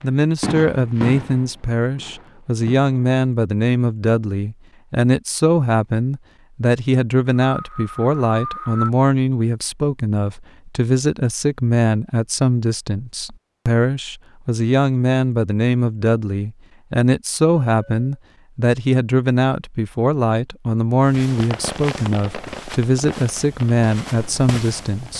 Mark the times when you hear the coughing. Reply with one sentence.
You can hear the coughing from 7.4 to 8.9 s.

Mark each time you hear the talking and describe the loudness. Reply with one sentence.
The talking can be heard from 0.0 to 25.1 s, at a steady volume.